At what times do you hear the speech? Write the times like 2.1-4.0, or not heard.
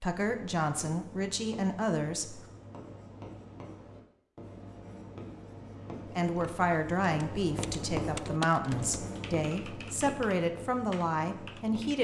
0.0-2.5, 6.0-11.9.